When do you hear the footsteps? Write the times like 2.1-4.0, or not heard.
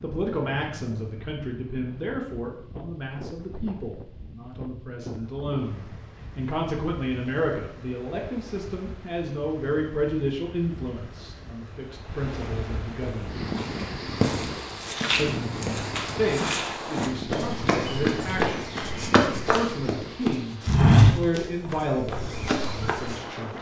13.0-23.3.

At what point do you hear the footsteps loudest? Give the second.
21 s.